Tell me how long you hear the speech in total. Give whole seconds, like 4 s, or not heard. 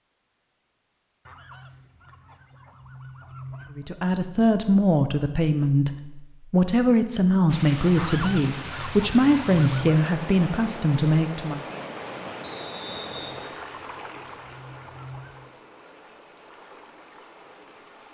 8 s.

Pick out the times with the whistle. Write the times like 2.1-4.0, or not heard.
12.4-13.3.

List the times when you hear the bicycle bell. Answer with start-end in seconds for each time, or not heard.
not heard.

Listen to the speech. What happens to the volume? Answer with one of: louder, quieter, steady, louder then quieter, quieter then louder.
steady.